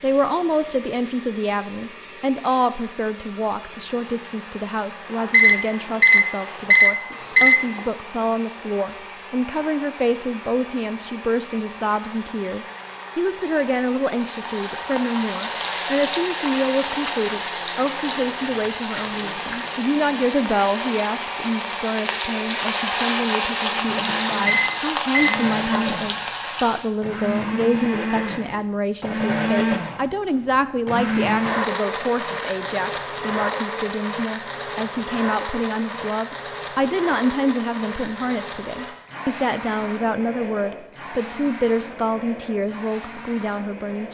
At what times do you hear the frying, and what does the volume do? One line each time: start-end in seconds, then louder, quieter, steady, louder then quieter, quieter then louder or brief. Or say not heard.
3.9-26.9 louder.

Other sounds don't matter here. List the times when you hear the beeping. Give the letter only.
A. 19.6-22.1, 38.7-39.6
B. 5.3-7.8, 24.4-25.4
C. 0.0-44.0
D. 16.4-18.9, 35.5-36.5
B.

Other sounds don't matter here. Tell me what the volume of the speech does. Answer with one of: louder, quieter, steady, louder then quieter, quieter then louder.
steady.